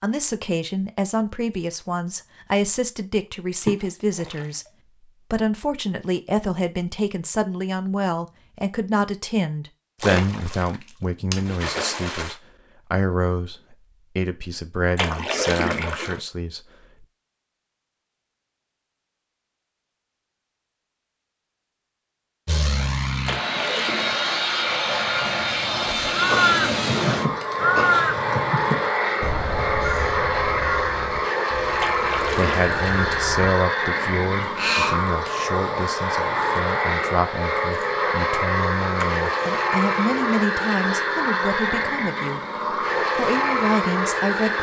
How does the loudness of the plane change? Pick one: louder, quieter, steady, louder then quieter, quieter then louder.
steady.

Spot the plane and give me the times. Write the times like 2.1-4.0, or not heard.
22.4-44.5.